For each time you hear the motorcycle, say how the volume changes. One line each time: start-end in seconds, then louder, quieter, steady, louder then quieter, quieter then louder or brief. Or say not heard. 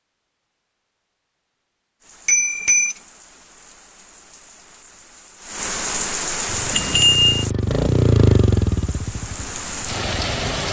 6.5-10.6 louder then quieter.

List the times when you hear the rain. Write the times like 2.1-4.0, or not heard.
2.0-10.6.